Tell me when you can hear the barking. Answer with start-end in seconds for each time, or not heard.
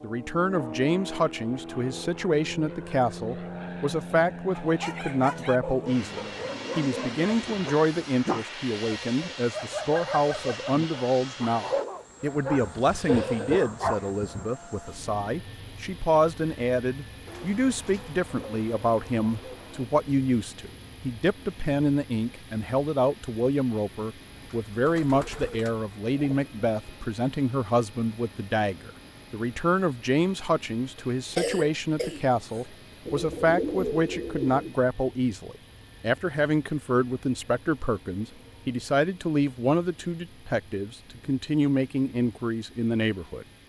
4.5-14.1.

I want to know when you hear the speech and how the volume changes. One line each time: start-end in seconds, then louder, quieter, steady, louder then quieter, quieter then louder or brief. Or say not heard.
0.0-43.5 steady.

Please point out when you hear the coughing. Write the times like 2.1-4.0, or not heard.
12.8-13.8, 30.9-32.6.